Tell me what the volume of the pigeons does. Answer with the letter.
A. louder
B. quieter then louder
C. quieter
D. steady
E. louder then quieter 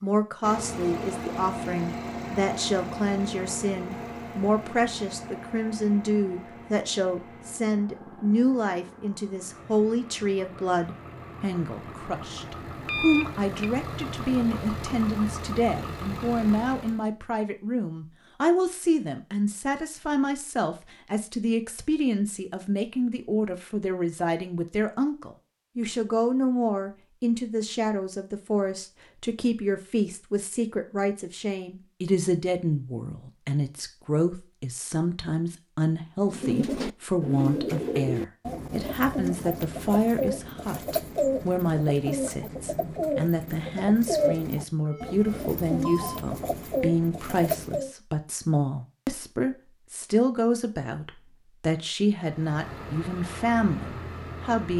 D.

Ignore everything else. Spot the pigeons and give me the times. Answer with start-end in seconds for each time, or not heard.
36.2-48.0.